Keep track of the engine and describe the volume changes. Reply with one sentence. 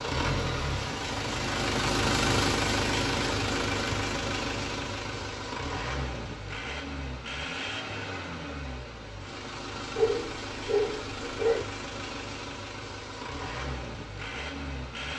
The volume of the engine goes down.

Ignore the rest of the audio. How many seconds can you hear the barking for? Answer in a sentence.
You can hear the barking for 2 seconds altogether.